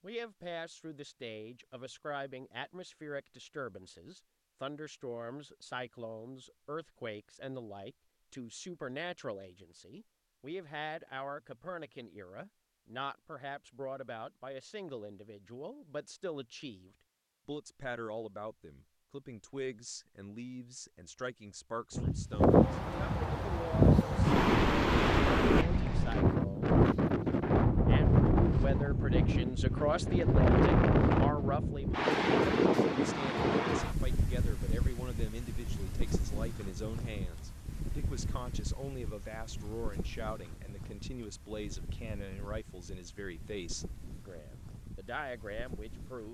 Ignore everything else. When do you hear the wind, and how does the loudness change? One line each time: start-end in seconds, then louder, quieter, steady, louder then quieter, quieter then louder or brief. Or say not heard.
21.9-46.2 quieter.